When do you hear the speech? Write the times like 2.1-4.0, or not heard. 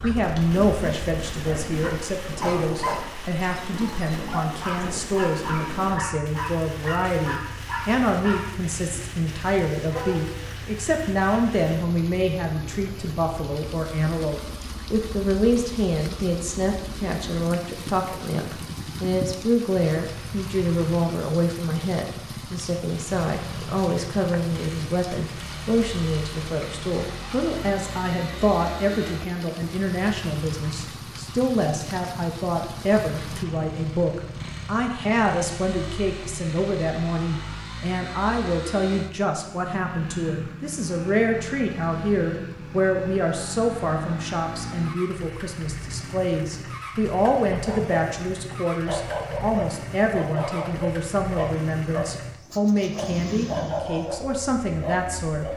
0.0-55.5.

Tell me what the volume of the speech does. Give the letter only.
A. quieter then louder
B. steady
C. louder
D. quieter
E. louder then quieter
B.